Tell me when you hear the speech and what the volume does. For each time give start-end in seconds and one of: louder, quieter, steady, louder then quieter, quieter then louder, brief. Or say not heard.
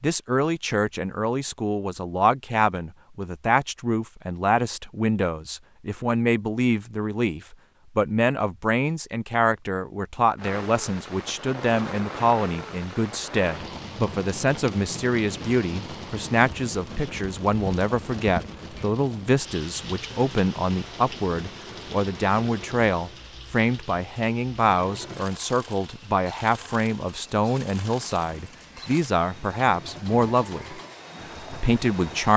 0.0-30.8 steady
31.4-32.3 brief.